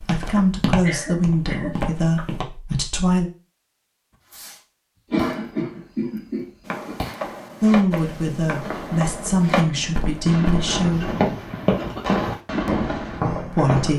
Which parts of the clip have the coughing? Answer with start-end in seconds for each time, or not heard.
0.3-2.2, 5.1-7.0, 10.7-12.3.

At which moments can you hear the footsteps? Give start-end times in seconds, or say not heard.
0.0-2.5, 6.7-13.9.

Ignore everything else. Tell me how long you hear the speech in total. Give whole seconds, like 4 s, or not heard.
7 s.